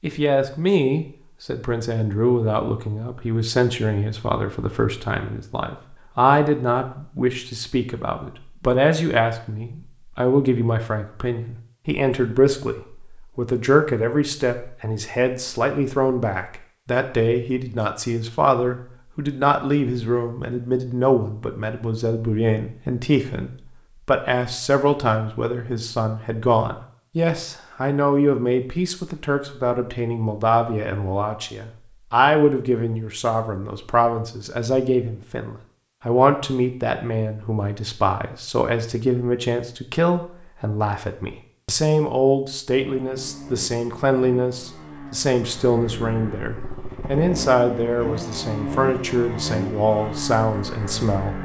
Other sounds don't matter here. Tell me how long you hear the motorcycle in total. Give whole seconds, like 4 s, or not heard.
9 s.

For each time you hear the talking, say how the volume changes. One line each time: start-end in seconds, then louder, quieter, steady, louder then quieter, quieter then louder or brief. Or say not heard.
0.0-51.4 steady.